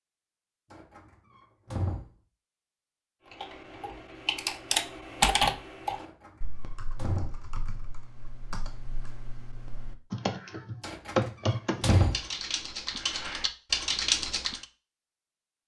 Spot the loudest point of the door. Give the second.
12 s.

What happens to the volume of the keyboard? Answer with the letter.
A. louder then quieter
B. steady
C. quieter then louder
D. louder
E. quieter
C.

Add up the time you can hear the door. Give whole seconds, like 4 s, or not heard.
4 s.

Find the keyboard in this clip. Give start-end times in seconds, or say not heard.
3.2-14.7.